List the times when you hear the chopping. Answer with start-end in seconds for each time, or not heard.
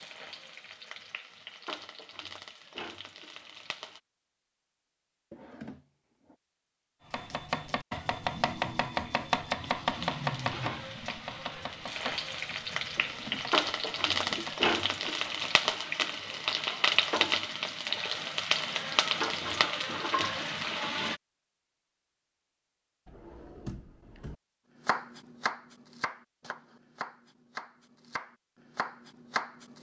7.1-15.8, 24.9-29.7.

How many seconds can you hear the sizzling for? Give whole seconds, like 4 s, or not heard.
15 s.